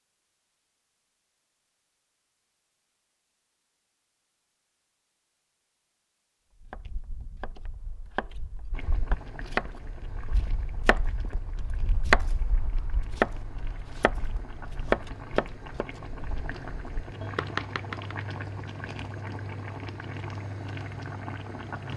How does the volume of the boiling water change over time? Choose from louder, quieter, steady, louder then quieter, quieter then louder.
louder.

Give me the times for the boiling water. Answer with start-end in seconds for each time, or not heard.
8.7-21.9.